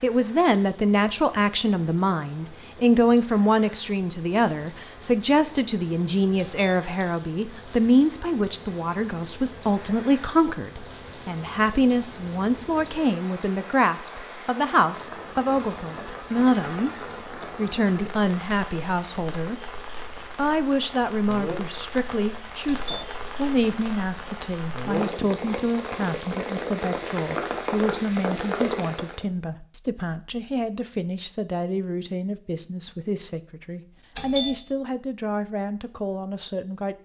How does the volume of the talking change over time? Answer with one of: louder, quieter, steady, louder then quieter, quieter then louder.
quieter.